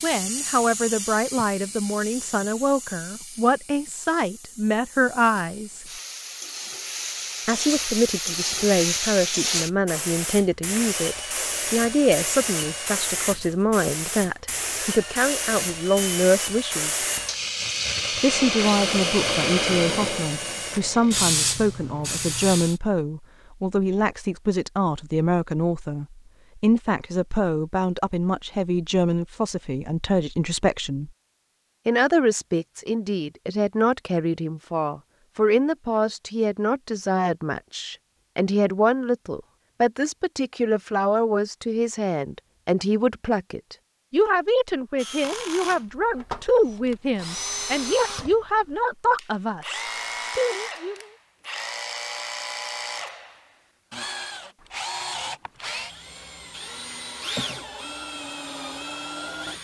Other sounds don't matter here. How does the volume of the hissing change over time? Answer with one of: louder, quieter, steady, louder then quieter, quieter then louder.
louder.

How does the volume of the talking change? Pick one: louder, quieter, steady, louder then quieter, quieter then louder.
steady.